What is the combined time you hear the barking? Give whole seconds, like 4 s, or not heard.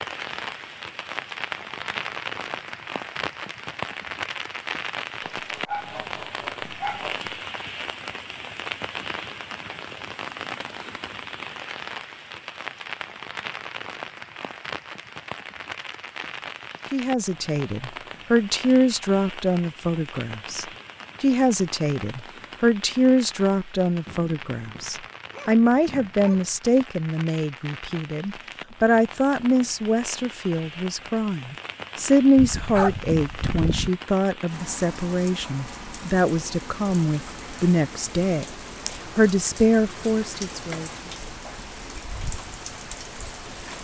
6 s.